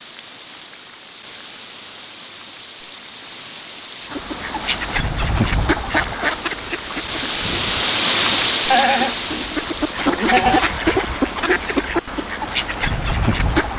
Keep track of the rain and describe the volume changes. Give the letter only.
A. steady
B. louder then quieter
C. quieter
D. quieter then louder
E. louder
B.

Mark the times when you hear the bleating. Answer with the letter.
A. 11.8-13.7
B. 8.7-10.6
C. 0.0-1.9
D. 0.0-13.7
B.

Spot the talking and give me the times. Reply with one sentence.
You can't hear the talking here.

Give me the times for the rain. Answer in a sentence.
The rain can be heard from 0.0 to 13.7 s.